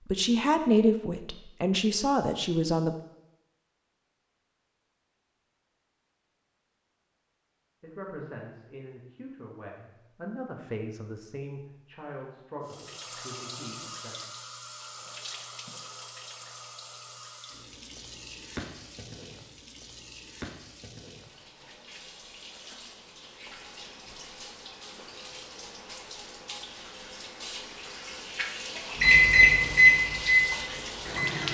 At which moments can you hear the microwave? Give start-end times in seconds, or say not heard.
29.0-31.4.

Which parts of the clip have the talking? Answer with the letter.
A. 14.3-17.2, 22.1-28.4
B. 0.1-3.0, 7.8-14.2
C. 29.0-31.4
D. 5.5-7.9
B.